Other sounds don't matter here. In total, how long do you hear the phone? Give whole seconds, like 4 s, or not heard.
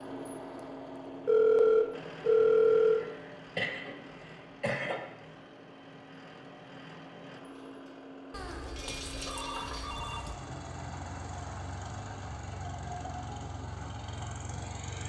4 s.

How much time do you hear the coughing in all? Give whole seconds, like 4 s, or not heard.
2 s.